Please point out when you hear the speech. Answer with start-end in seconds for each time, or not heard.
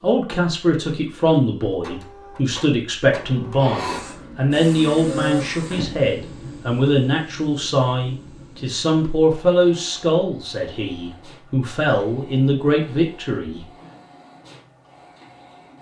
0.0-13.7.